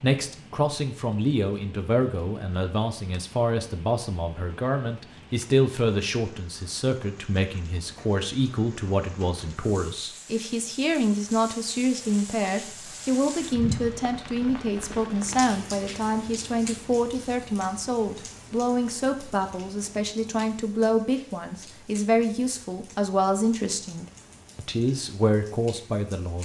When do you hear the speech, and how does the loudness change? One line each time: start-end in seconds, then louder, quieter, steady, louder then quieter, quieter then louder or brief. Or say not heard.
0.0-26.3 steady.